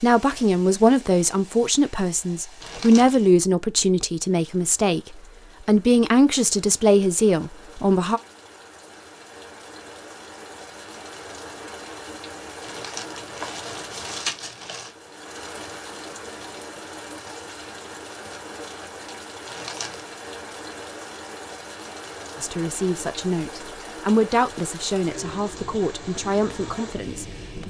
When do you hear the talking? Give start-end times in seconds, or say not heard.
0.0-8.2, 22.4-27.6.